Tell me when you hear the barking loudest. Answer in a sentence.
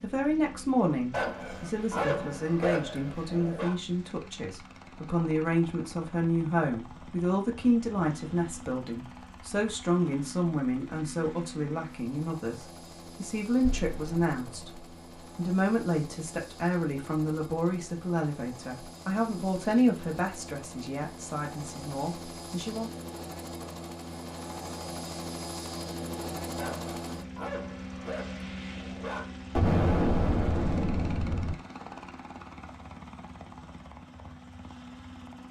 The volume of the barking peaks at 2 seconds.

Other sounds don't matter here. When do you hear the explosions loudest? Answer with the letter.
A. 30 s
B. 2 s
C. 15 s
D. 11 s
A.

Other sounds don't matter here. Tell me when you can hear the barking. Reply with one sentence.
The barking can be heard from 1.1 to 3.8 s and from 26.6 to 29.2 s.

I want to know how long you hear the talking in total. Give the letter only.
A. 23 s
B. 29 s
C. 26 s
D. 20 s
A.